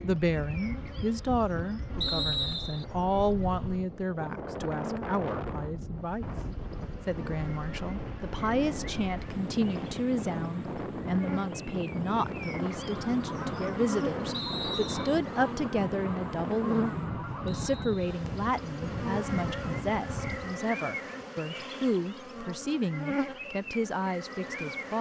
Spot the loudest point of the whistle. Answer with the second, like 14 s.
2 s.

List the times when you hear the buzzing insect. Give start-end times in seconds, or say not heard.
0.0-24.9.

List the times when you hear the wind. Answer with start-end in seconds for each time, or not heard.
0.0-20.6.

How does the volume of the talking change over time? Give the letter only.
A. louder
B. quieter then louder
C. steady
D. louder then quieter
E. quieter
C.